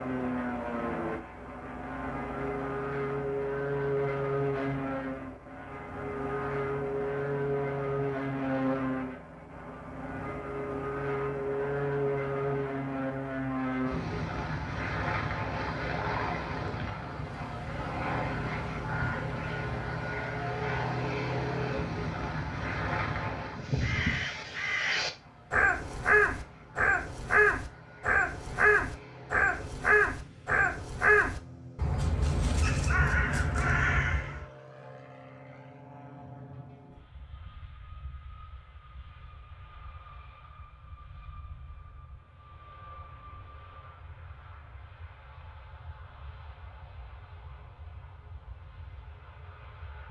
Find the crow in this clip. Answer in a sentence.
The crow can be heard from 23.5 to 34.5 s.